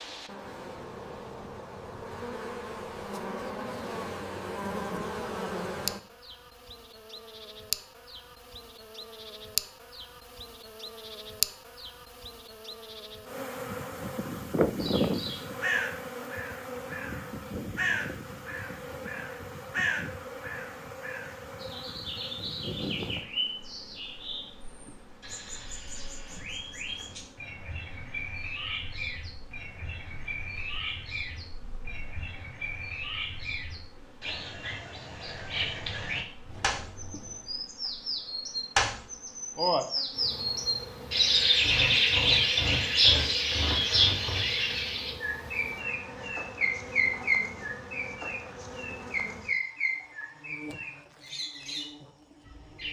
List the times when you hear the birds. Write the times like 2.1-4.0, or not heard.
14.8-52.8.